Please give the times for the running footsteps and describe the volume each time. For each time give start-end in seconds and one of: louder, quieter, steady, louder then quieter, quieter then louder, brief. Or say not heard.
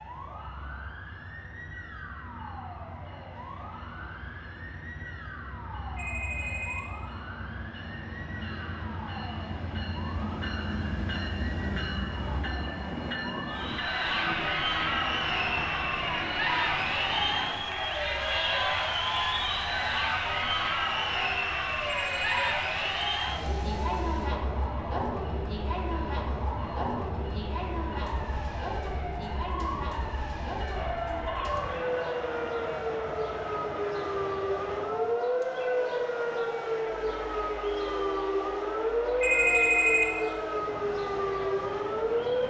not heard.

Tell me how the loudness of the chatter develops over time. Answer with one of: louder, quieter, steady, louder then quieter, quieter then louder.
quieter.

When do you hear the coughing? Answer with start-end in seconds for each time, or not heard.
not heard.